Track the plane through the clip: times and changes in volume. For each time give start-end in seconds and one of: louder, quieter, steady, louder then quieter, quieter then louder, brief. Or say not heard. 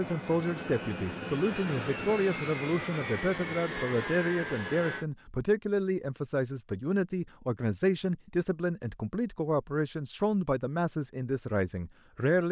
0.0-5.0 steady.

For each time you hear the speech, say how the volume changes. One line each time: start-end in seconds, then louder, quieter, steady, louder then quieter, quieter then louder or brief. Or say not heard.
0.0-12.4 steady.